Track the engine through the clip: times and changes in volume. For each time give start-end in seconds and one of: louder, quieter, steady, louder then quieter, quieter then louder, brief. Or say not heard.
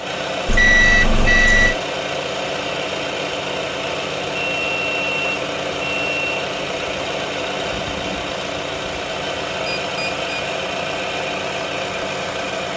0.0-12.7 steady.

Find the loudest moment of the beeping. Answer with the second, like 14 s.
1 s.